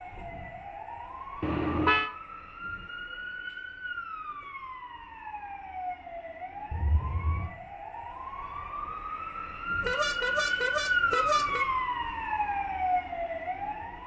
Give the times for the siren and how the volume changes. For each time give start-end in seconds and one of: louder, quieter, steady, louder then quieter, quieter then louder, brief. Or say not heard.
0.0-14.0 louder.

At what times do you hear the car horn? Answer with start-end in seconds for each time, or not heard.
1.4-2.1, 6.7-7.5, 9.8-11.7.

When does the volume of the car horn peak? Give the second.
2 s.